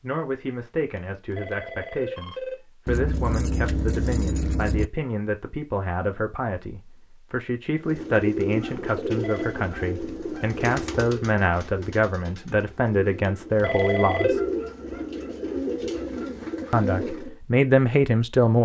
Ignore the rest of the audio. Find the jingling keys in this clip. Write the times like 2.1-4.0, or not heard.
2.9-4.9.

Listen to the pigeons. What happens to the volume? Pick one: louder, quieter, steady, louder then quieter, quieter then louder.
quieter then louder.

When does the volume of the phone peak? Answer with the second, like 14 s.
14 s.